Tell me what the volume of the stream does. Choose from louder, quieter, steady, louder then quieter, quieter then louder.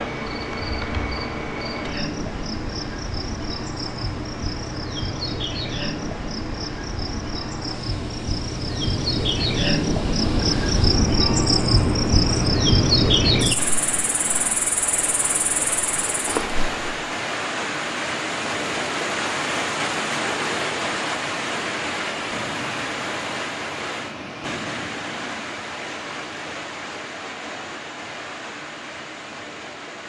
louder then quieter.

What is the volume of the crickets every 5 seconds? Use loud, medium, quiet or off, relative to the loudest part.
medium, medium, loud, medium, off, off.